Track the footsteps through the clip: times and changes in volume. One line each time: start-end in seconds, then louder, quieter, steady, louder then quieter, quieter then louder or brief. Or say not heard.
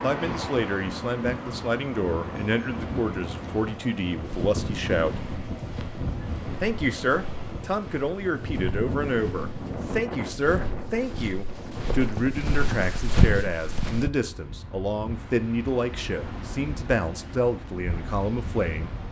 4.2-14.1 louder.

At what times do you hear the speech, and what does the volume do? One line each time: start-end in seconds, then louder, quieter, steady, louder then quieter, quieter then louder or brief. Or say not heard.
0.0-5.2 steady
6.6-19.0 steady.